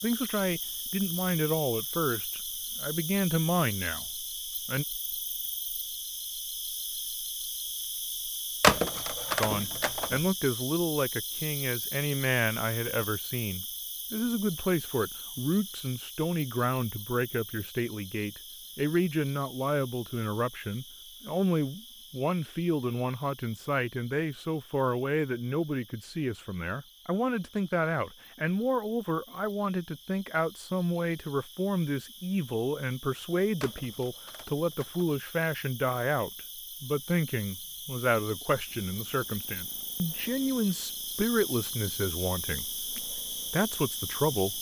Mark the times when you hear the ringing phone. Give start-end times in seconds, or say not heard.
8.6-10.2, 33.6-35.1.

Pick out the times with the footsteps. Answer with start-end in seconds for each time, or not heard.
not heard.